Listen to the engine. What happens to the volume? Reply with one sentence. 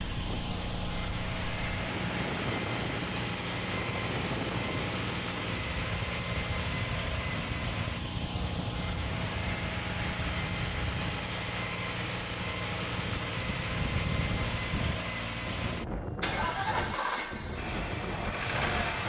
The volume of the engine stays about the same.